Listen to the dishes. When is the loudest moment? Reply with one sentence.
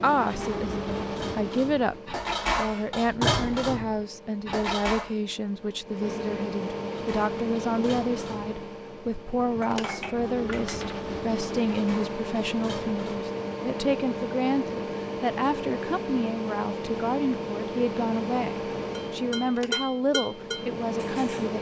The loudest moment of the dishes is at 3 seconds.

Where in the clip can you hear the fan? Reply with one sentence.
You can hear the fan from 0.0 to 21.5 s.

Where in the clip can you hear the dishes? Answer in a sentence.
The dishes can be heard from 0.1 to 5.1 s, from 6.9 to 13.3 s and from 18.9 to 21.5 s.